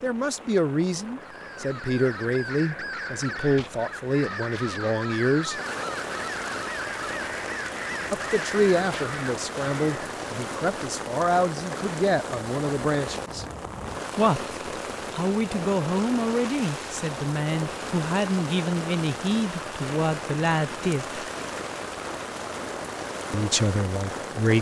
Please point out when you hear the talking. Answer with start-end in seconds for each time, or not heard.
0.0-5.6, 8.1-13.4, 14.2-21.2, 23.3-24.5.